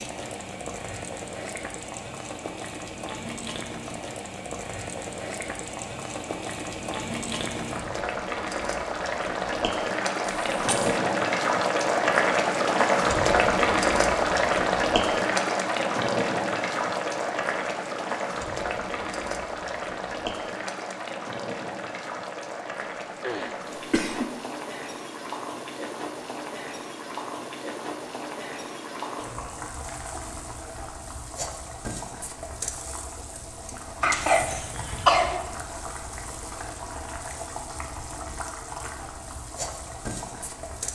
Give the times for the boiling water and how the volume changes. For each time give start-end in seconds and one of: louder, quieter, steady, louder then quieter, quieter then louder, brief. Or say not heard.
0.0-40.8 louder then quieter.